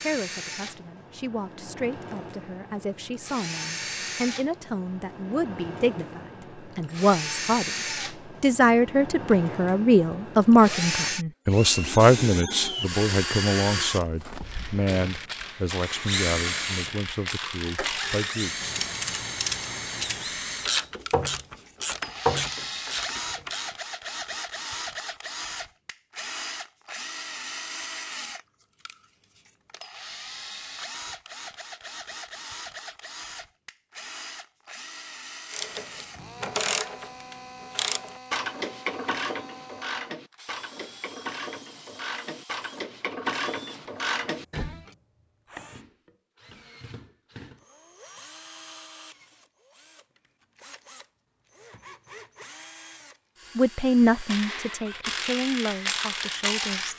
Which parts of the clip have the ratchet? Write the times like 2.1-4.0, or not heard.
14.4-23.6, 35.5-44.9, 54.1-56.9.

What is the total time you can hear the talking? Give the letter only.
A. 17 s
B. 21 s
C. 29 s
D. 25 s
B.